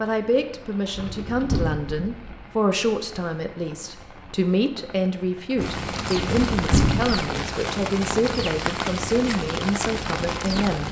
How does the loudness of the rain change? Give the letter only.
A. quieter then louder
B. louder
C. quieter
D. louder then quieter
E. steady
B.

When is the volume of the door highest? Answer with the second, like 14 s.
7 s.